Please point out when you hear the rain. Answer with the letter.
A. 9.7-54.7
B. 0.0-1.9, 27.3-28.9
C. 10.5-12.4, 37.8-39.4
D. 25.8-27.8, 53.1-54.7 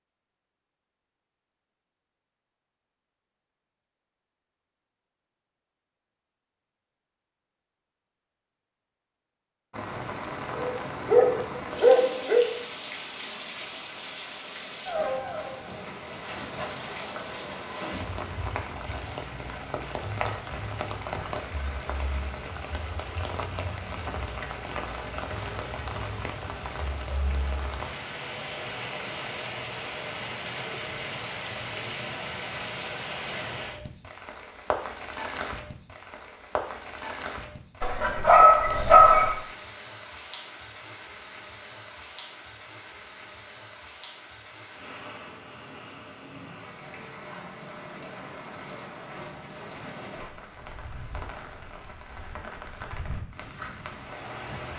A.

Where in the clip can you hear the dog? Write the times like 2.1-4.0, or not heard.
10.5-12.4, 37.8-39.4.